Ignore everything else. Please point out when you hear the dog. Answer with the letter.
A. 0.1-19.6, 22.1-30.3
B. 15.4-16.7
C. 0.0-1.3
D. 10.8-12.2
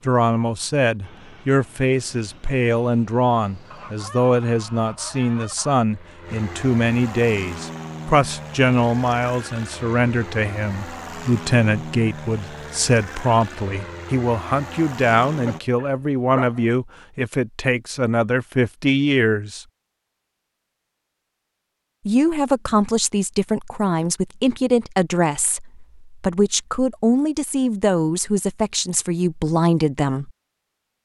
B.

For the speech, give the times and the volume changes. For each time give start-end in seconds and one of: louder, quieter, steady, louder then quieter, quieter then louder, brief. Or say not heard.
0.1-19.6 steady
22.1-30.3 steady.